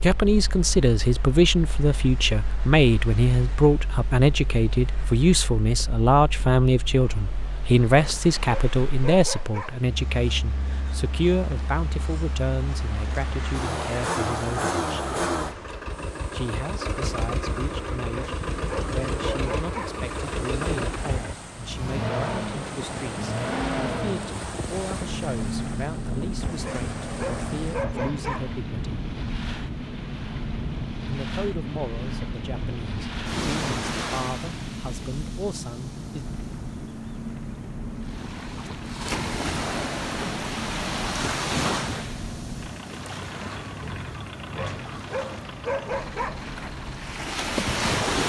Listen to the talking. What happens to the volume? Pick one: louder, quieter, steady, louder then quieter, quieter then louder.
quieter.